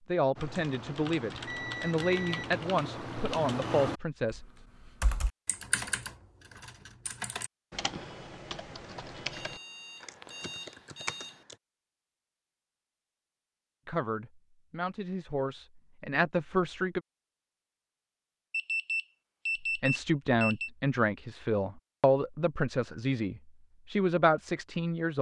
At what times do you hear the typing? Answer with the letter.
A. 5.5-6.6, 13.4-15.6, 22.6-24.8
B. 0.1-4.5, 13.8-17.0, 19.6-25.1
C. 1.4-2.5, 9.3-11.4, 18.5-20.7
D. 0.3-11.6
D.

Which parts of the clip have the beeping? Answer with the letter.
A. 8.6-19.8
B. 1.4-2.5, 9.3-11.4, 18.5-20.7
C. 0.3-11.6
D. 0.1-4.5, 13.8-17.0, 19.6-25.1
B.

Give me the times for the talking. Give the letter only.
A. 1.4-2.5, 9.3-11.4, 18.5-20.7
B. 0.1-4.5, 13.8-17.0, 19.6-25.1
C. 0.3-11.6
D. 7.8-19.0
B.